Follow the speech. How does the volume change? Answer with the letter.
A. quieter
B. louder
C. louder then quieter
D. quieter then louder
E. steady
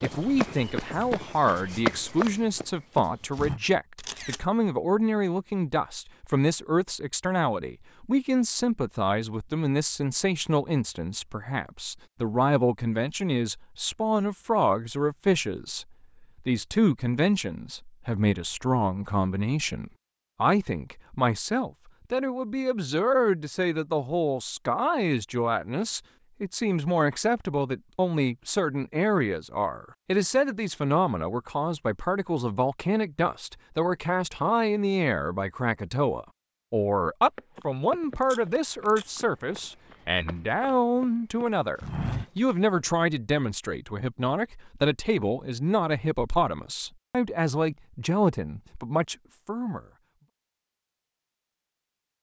E.